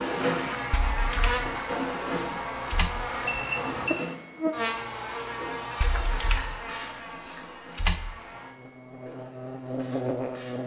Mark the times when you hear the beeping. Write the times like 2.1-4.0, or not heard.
3.2-4.2.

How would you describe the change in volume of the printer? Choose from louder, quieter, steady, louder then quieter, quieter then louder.
quieter.